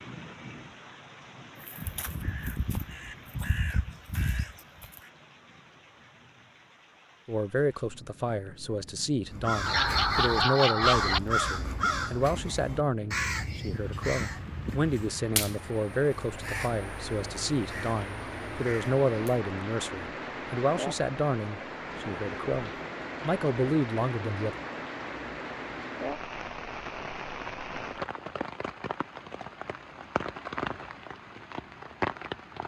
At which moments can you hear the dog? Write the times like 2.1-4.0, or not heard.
9.7-11.2.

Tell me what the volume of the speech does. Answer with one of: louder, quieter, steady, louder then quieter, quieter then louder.
steady.